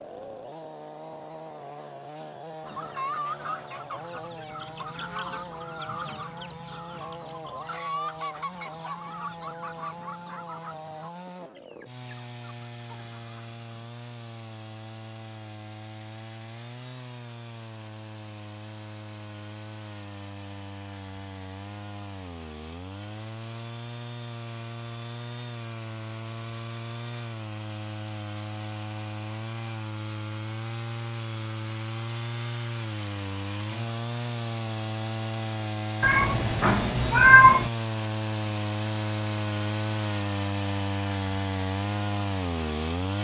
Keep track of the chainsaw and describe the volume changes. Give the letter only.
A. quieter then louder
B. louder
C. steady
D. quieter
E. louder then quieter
B.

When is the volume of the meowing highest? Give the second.
37 s.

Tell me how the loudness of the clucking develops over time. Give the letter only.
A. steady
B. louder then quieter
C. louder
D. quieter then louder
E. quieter
E.